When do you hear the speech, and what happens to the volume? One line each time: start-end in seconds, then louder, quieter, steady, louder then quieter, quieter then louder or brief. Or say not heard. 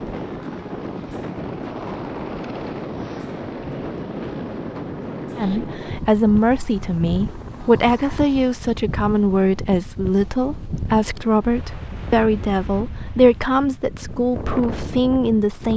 5.3-15.7 steady.